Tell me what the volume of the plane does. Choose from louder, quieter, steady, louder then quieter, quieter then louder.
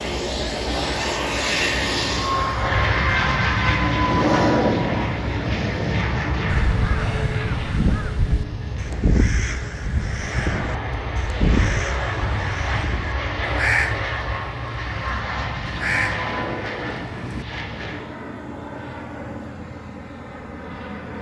quieter.